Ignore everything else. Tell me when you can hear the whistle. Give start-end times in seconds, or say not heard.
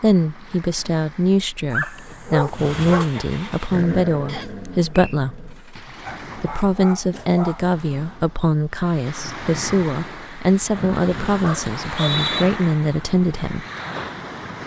4.2-5.2, 11.7-12.4.